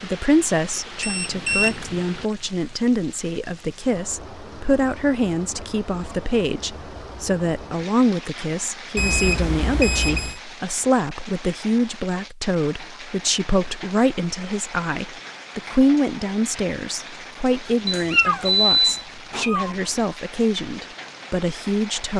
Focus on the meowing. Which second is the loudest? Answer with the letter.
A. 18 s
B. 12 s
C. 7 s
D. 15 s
A.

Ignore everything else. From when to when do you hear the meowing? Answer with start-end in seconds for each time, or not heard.
17.6-19.8.